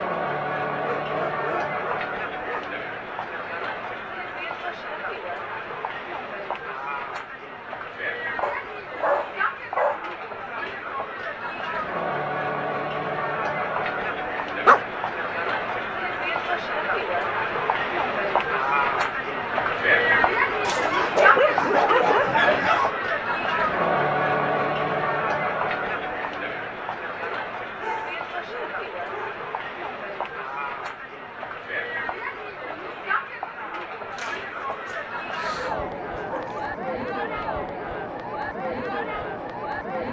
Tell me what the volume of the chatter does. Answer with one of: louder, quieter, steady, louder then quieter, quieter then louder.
louder then quieter.